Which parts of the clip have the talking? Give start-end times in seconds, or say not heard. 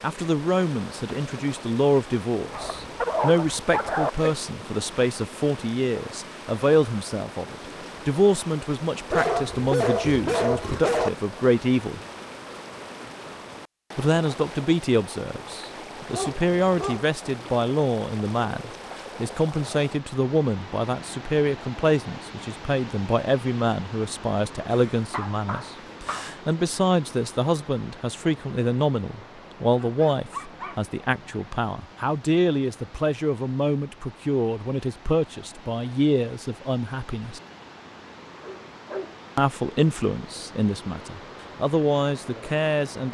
0.0-12.0, 13.9-37.4, 39.4-43.0.